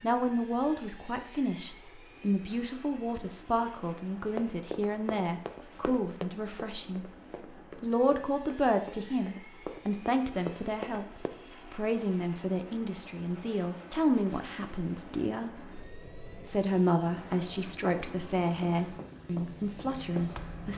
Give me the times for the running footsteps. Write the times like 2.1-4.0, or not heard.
4.2-11.3, 18.6-20.7.